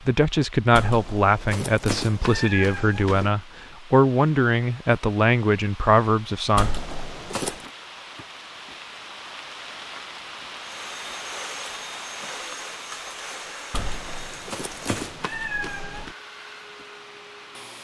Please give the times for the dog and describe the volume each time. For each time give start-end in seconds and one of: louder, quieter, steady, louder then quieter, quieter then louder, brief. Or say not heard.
not heard.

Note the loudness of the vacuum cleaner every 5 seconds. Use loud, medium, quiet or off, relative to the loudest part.
off, off, loud, medium.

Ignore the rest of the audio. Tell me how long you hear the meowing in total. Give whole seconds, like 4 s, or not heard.
6 s.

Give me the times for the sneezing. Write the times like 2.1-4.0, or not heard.
not heard.